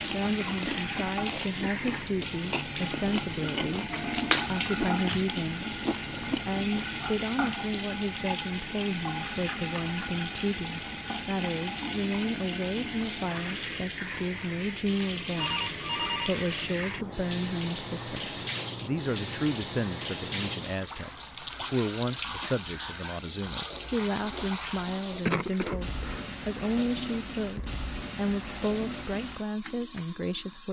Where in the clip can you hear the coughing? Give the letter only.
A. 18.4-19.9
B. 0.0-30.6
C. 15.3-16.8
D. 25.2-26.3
D.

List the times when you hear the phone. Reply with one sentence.
You can hear the phone from 15.3 to 16.8 s.